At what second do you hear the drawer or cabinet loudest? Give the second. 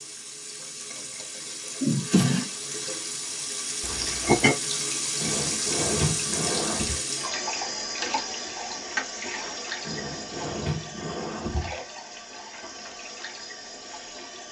2 s.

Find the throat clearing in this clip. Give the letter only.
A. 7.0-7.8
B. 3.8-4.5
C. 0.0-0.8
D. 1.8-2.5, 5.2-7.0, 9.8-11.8
B.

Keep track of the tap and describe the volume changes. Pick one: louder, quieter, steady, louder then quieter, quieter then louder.
louder then quieter.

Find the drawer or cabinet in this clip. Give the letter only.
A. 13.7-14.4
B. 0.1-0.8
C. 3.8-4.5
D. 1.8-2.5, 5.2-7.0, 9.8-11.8
D.